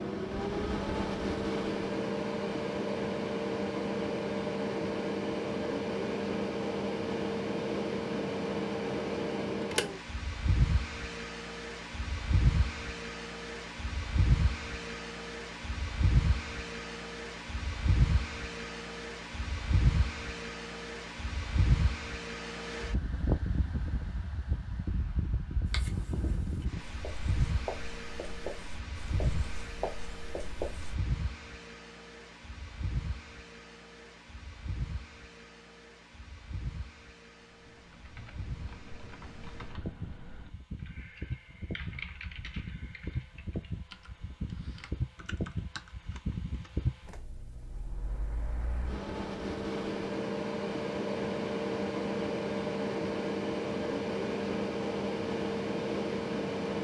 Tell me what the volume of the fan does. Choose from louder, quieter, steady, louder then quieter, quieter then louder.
quieter then louder.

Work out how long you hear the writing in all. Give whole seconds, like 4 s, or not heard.
5 s.